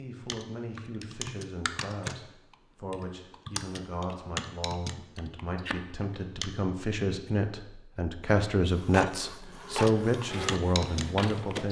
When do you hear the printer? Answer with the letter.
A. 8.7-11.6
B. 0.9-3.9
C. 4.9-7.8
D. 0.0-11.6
A.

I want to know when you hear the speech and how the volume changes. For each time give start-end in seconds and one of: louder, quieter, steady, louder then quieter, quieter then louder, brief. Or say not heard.
0.0-11.6 louder.